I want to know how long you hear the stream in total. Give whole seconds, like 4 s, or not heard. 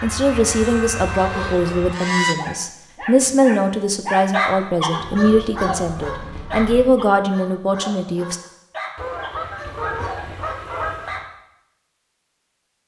not heard.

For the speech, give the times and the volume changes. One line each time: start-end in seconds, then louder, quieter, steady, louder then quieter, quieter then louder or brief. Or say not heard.
0.0-8.4 steady.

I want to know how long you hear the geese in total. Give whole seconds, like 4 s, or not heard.
6 s.